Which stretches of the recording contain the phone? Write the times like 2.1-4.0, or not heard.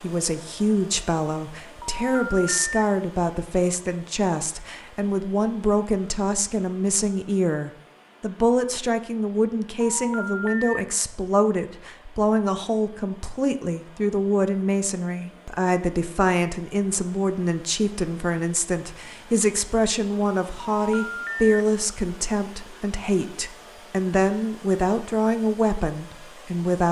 1.8-2.7, 9.8-10.8, 20.8-21.6.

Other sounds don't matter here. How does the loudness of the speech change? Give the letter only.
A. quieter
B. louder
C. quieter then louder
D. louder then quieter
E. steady
E.